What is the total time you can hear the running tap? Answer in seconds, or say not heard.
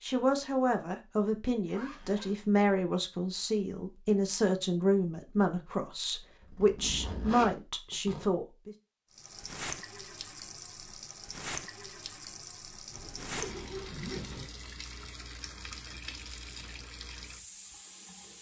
9 s.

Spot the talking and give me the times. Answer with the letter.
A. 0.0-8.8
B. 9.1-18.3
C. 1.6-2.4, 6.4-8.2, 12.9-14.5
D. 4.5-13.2
A.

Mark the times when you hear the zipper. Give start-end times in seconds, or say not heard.
1.6-2.4, 6.4-8.2, 12.9-14.5.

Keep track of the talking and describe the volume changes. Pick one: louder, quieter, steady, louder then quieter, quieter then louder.
steady.